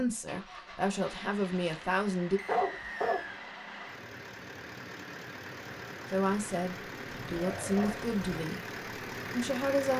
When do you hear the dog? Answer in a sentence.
The dog can be heard from 1.4 to 1.9 s, from 2.5 to 3.2 s and from 7.3 to 8.4 s.